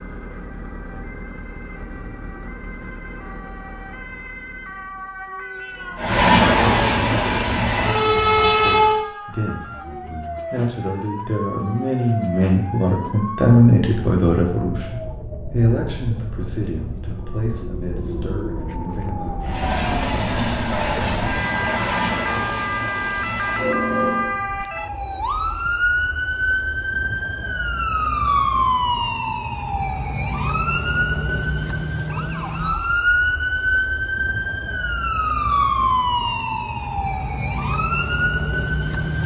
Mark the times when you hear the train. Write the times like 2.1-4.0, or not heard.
6.0-9.0, 19.4-24.4.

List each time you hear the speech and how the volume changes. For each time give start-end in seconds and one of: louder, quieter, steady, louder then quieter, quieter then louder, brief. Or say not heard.
8.0-19.6 louder then quieter.